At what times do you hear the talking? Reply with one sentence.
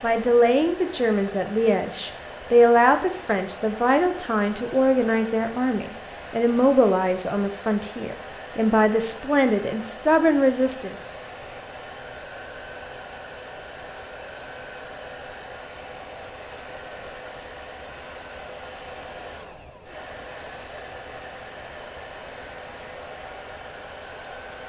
The talking can be heard from 0.0 to 10.9 s.